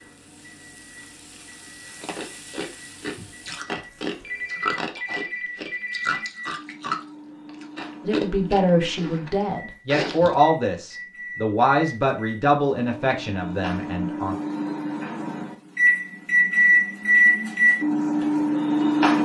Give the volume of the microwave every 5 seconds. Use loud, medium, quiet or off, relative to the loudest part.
quiet, quiet, quiet, loud.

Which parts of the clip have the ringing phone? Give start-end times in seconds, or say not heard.
4.2-6.3.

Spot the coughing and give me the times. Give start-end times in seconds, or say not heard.
not heard.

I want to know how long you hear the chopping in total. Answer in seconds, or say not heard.
not heard.